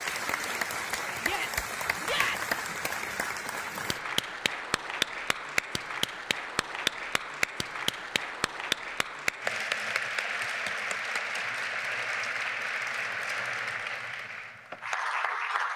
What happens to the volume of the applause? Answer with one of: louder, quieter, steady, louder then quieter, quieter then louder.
steady.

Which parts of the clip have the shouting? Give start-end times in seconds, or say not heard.
1.2-2.5.